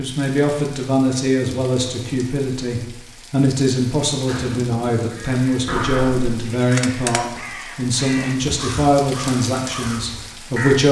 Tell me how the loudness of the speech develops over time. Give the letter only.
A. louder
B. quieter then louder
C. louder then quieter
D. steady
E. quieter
D.